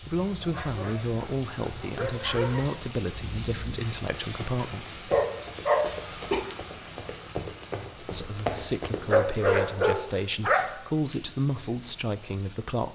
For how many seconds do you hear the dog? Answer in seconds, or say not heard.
5 s.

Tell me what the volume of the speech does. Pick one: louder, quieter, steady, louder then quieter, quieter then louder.
steady.